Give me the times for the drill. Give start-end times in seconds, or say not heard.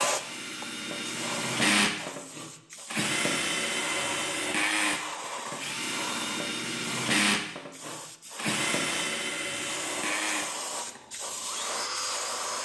0.0-12.5.